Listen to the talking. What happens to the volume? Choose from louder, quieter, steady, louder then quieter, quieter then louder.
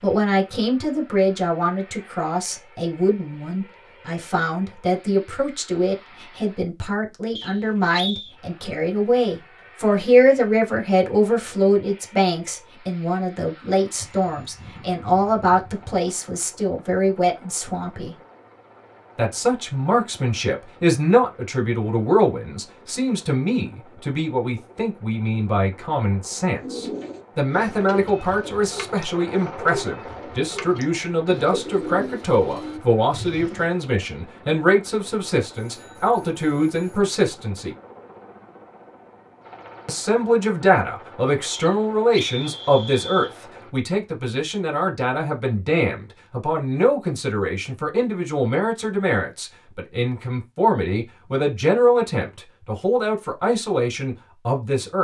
steady.